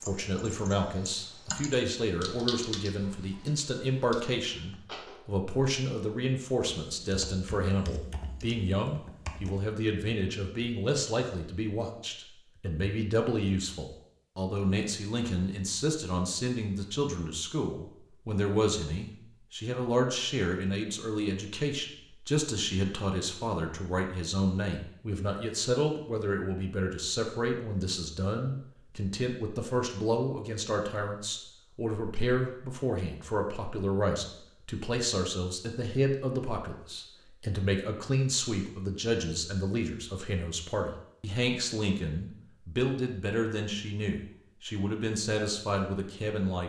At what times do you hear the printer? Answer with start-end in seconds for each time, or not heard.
not heard.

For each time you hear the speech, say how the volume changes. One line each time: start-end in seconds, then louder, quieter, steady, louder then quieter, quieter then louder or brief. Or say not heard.
0.0-46.6 steady.